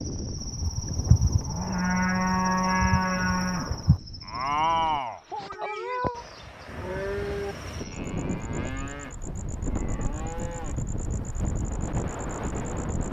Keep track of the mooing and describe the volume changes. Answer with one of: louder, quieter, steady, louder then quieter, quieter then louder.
quieter.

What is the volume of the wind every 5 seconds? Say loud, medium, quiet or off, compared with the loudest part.
medium, loud, loud.